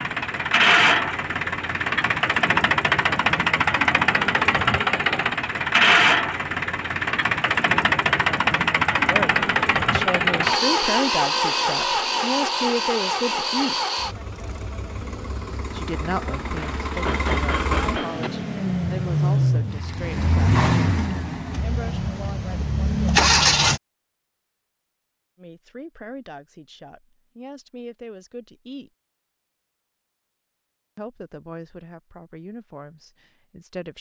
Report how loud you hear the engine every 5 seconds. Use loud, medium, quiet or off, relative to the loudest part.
loud, loud, loud, medium, loud, off, off.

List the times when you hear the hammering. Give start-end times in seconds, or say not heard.
16.6-18.3.